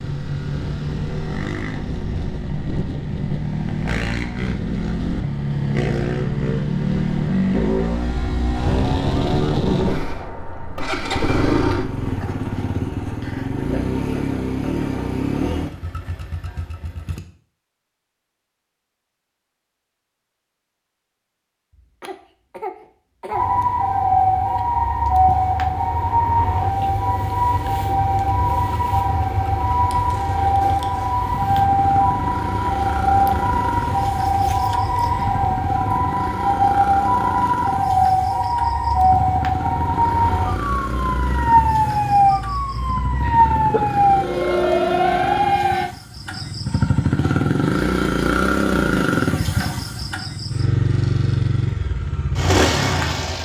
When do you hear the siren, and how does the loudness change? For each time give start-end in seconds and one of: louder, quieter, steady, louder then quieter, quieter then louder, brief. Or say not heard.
23.3-45.9 steady.